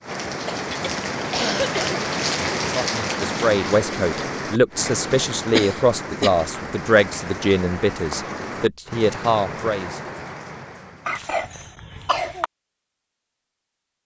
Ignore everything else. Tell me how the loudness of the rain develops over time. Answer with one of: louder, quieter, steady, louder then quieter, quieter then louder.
quieter.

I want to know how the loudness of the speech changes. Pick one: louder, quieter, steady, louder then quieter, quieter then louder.
steady.